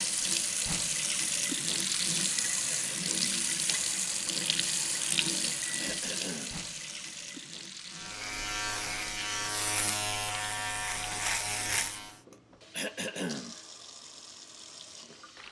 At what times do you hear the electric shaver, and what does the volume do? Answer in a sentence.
The electric shaver can be heard from 7.8 to 12.2 s, at a steady volume.